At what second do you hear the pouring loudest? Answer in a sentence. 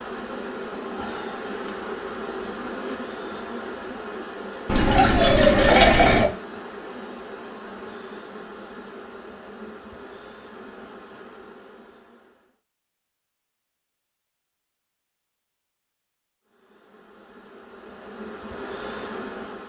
The loudest moment of the pouring is at 6 seconds.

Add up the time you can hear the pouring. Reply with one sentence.
You can hear the pouring for 2 seconds altogether.